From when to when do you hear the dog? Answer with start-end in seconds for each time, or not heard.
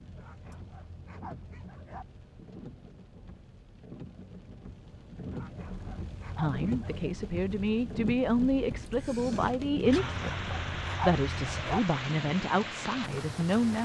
0.1-2.0, 5.2-7.1, 9.8-11.8.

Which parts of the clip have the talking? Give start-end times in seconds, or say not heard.
6.3-13.8.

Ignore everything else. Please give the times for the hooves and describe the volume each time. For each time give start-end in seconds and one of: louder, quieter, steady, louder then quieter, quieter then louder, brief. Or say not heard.
not heard.